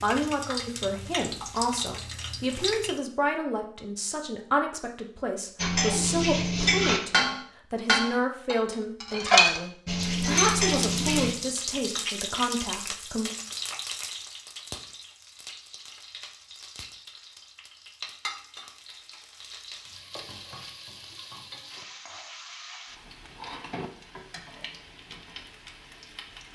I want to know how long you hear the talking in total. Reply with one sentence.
The talking can be heard for 13 seconds in total.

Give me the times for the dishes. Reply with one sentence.
The dishes can be heard from 5.5 to 11.3 s.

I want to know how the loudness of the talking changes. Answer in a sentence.
The loudness of the talking stays about the same.